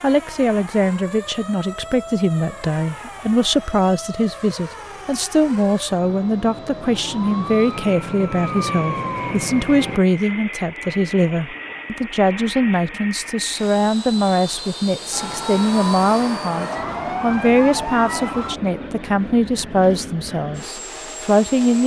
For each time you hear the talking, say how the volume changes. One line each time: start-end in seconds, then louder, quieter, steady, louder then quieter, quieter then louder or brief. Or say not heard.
0.0-21.8 steady.